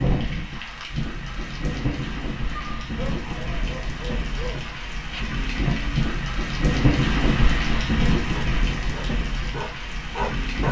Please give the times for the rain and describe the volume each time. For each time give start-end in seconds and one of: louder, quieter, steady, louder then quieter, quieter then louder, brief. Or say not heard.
0.0-10.6 louder then quieter.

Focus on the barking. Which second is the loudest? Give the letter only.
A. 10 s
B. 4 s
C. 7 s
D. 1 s
A.